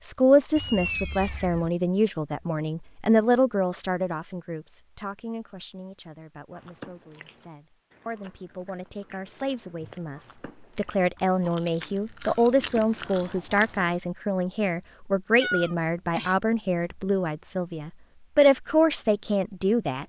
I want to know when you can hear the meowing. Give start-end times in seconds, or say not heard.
0.6-1.7, 15.4-16.4.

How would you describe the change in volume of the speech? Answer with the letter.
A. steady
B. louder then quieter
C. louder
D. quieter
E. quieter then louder
E.